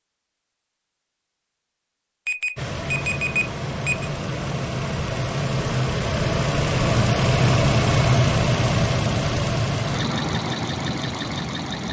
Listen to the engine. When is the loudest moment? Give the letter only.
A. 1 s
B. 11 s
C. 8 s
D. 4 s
C.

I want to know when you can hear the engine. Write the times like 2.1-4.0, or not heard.
2.5-11.8.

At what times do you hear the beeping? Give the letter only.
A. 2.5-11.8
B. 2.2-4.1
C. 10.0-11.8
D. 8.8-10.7
B.